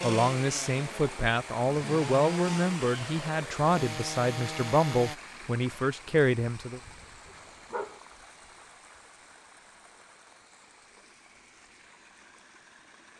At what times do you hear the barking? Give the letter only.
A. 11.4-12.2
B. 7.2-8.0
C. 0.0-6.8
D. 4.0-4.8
B.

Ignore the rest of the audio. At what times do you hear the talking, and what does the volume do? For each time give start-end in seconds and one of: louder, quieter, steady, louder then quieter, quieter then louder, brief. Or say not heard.
0.0-6.8 steady.